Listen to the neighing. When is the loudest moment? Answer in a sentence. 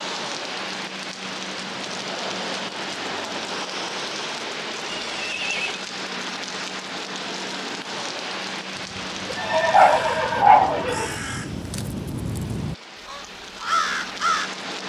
The loudest moment of the neighing is at 10 seconds.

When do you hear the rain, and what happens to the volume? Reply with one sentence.
You can hear the rain from 0.0 to 14.8 s, getting quieter.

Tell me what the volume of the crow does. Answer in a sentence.
The volume of the crow goes up.